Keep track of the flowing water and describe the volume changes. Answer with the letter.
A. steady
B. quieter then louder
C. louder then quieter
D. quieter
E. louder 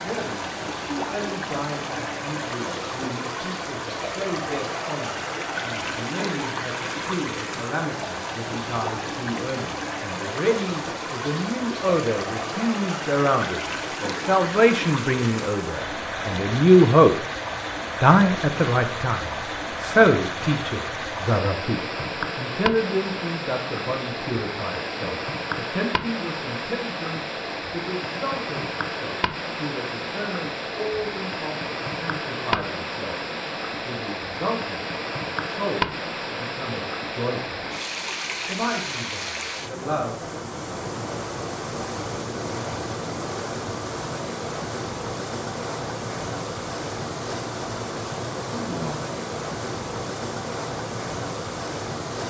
A.